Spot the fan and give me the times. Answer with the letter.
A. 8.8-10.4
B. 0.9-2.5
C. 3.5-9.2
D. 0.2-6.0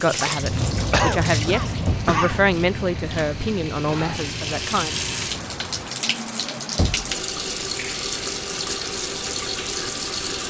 D.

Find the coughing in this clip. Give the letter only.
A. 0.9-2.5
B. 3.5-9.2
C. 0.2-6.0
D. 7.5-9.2
A.